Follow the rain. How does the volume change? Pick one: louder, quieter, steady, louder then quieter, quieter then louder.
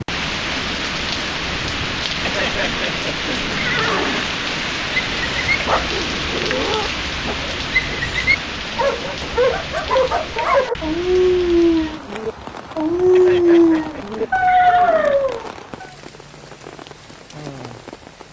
quieter.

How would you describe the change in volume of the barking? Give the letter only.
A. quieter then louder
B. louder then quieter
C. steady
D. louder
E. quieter
D.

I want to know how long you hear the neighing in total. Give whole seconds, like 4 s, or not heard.
4 s.